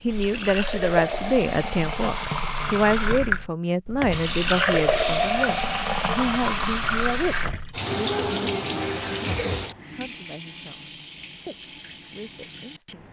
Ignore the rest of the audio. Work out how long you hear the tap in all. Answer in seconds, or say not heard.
13 s.